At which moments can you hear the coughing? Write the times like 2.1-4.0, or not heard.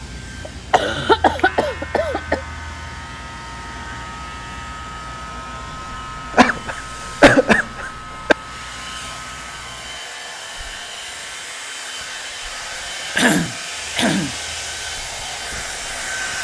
0.5-2.4, 6.3-8.3, 13.2-14.3.